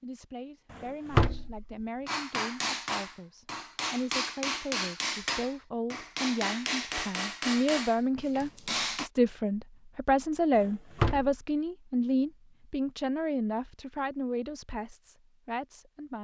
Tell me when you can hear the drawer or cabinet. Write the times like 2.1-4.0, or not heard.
0.8-1.6, 10.6-11.4.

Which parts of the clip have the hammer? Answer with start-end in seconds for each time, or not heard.
2.0-9.1.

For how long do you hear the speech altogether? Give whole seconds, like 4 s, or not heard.
16 s.